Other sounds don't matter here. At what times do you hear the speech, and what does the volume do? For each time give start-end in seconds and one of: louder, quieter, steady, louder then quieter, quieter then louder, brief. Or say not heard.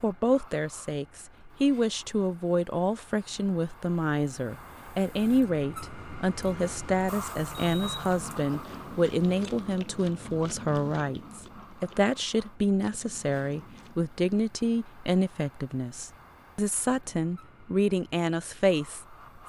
0.0-19.1 steady.